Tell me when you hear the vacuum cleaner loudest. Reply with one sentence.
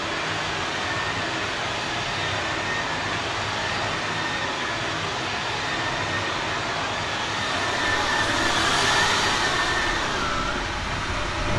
The volume of the vacuum cleaner peaks at 9 seconds.